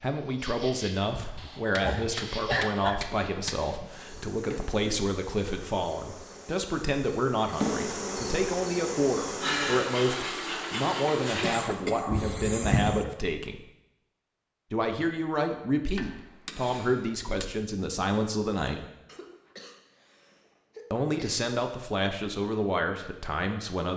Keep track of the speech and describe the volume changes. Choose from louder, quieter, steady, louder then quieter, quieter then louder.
steady.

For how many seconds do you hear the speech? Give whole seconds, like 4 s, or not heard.
21 s.